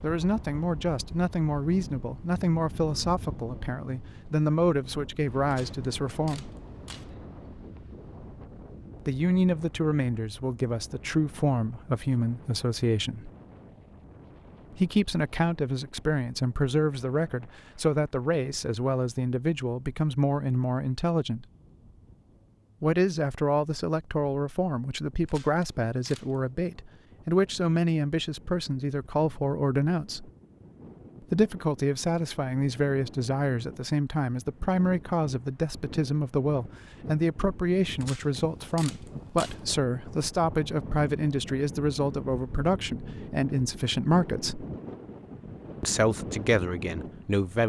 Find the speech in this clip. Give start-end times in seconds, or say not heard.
0.0-6.5, 9.1-13.3, 14.7-21.4, 22.8-30.3, 31.3-44.6, 45.8-47.6.